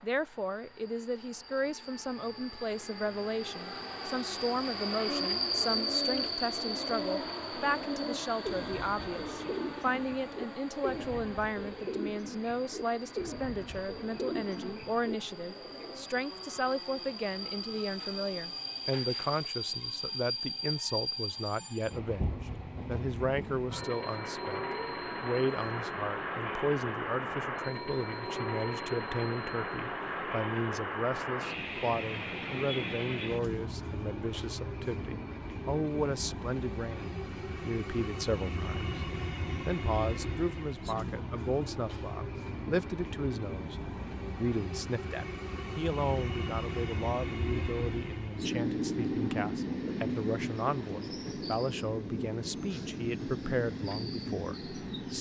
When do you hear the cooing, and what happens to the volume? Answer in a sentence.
You can hear the cooing from 5.0 to 16.1 s, at a steady volume.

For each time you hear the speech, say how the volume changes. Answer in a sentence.
You can hear the speech from 0.0 to 55.1 s, at a steady volume.